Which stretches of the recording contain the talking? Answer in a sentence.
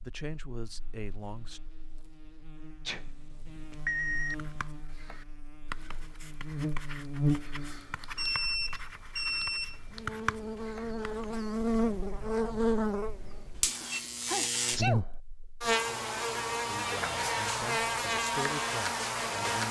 You can hear the talking from 0.0 to 1.6 s and from 16.6 to 19.6 s.